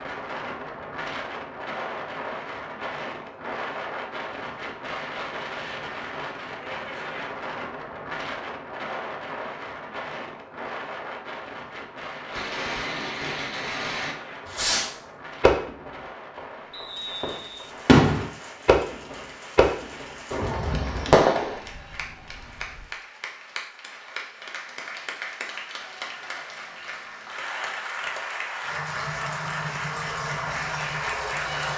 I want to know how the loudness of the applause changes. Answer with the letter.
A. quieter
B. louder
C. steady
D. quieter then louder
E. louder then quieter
B.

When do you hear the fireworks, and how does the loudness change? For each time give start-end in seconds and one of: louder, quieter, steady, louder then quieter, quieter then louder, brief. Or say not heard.
12.3-16.4 louder
17.2-21.6 quieter then louder.